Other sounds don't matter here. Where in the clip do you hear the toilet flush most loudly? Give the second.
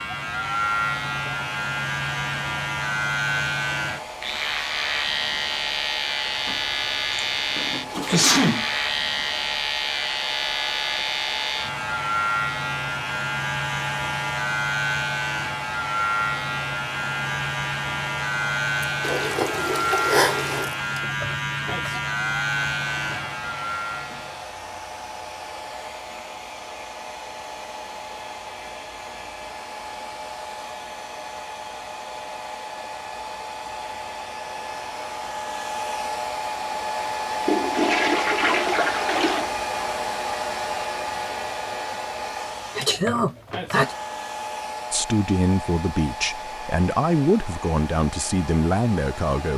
38 s.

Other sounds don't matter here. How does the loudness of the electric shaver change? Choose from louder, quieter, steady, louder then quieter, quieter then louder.
steady.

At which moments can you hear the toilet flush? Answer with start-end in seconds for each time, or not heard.
6.3-8.5, 19.0-20.7, 37.5-39.5.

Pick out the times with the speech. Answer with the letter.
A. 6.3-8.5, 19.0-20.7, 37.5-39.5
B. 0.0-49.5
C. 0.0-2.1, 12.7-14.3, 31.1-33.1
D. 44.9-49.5
D.